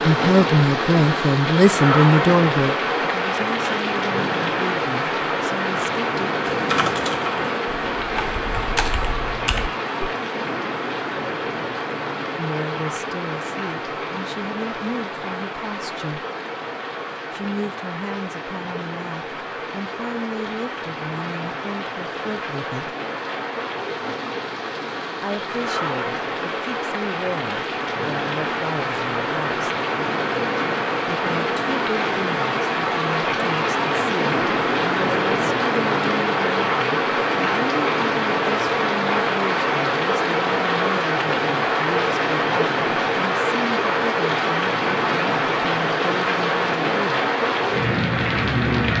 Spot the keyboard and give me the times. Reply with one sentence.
The keyboard can be heard from 6.5 to 10.1 s.